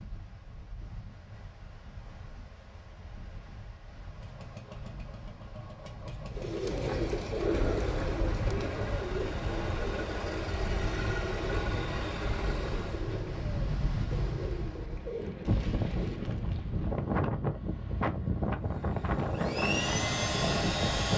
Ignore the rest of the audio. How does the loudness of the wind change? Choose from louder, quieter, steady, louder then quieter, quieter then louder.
louder.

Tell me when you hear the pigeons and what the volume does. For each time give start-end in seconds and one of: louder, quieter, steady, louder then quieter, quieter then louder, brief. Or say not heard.
6.3-16.6 quieter.